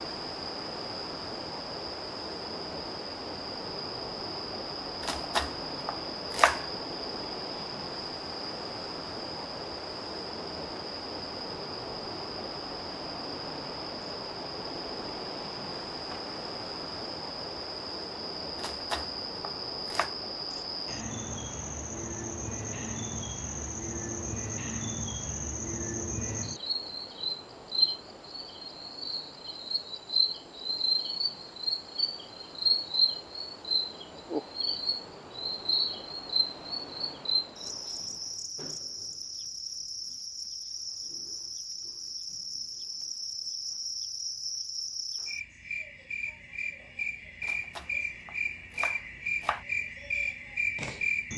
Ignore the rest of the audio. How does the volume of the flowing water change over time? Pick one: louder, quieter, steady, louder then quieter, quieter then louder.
quieter.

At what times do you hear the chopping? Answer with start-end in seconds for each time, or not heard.
5.0-6.7, 18.6-20.1, 47.4-49.6.